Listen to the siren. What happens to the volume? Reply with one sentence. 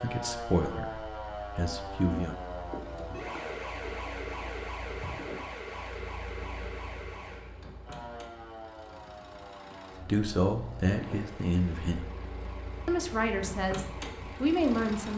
The volume of the siren goes down.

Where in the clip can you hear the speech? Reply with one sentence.
You can hear the speech from 0.0 to 2.4 s, from 10.0 to 12.1 s and from 12.8 to 15.1 s.